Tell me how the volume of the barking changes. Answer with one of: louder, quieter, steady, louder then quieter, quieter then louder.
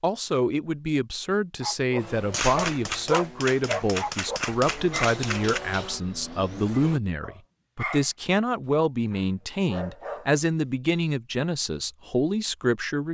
quieter then louder.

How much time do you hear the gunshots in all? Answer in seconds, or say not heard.
3 s.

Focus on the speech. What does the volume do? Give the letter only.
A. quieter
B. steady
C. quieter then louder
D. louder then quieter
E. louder
B.